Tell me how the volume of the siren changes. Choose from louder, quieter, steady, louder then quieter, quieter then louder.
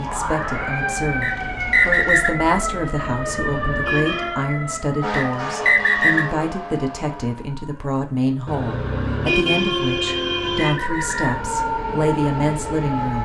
quieter then louder.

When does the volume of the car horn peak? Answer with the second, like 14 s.
9 s.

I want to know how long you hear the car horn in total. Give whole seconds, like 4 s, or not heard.
4 s.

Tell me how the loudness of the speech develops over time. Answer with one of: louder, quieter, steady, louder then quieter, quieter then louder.
steady.